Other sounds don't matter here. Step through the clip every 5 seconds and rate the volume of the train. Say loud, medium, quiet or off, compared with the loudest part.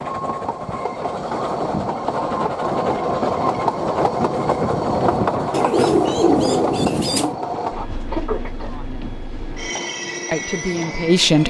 loud, loud, medium.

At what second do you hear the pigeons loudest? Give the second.
6 s.